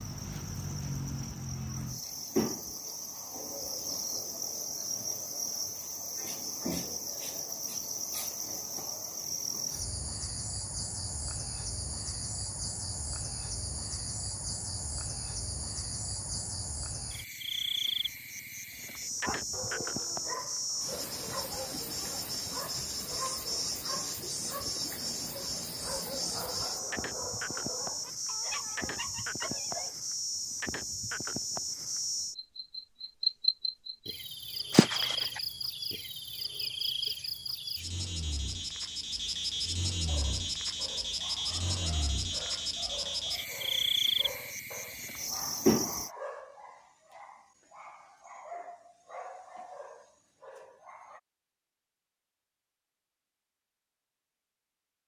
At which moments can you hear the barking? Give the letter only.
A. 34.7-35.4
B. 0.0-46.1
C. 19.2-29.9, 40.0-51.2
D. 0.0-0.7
C.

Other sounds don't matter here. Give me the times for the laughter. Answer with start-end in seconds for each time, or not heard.
34.7-35.4.